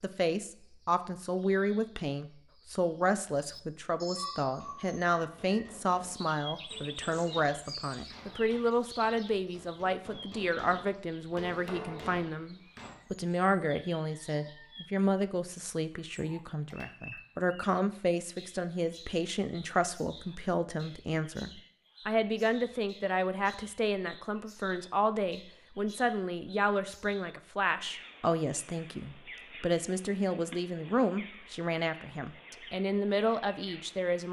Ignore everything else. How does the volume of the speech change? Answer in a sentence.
The volume of the speech stays about the same.